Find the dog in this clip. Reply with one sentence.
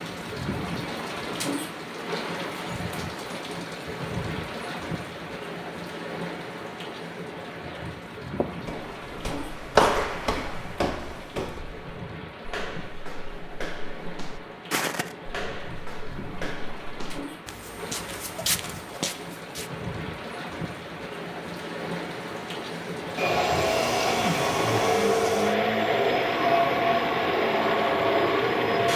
The dog can't be heard in this clip.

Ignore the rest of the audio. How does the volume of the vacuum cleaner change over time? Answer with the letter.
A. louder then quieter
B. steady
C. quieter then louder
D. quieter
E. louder
B.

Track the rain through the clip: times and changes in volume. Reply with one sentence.
The rain can be heard from 0.0 to 28.9 s, getting quieter then louder.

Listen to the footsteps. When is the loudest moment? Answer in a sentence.
The loudest moment of the footsteps is at 10 seconds.